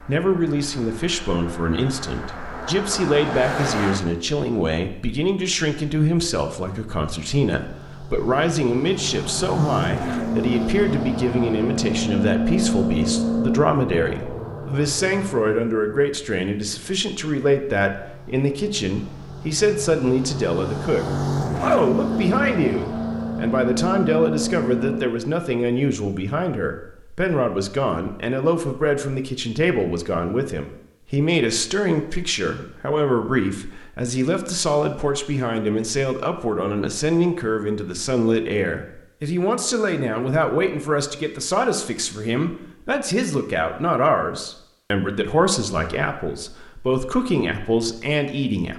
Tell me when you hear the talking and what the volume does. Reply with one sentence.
The talking can be heard from 0.0 to 48.7 s, at a steady volume.